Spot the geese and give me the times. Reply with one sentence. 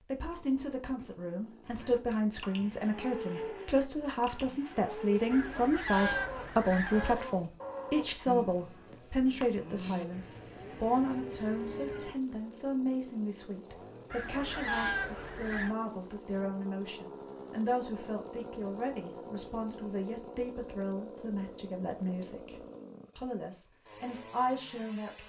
The geese can be heard from 5.3 to 7.2 s and from 14.1 to 15.8 s.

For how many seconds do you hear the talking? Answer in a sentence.
The talking can be heard for 25 seconds in total.